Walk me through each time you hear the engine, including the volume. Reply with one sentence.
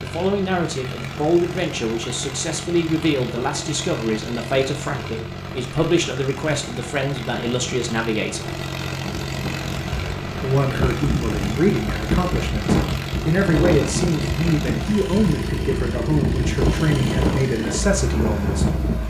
The engine can be heard from 0.0 to 19.0 s, at a steady volume.